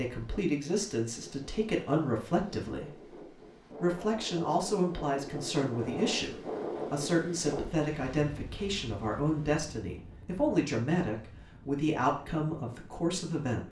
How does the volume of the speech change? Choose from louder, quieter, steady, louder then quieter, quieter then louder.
steady.